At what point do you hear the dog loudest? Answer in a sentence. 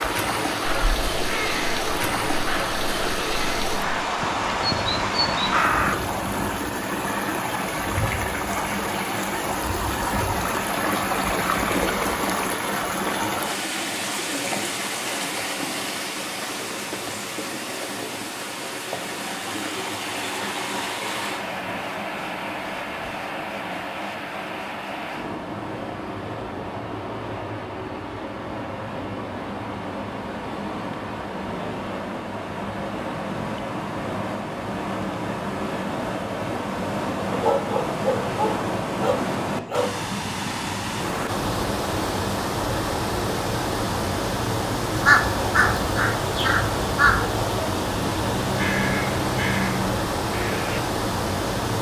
The volume of the dog peaks at 38 seconds.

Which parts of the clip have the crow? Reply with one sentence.
The crow can be heard from 0.7 to 6.5 s and from 45.0 to 50.8 s.